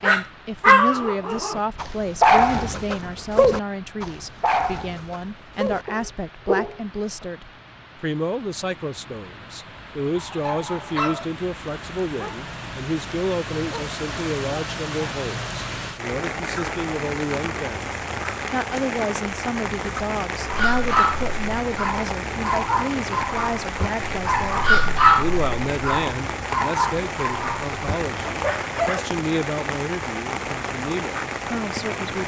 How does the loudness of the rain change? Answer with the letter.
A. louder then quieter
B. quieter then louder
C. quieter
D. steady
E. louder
E.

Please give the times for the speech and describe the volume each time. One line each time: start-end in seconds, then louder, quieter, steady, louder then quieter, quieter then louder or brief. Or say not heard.
0.0-32.2 steady.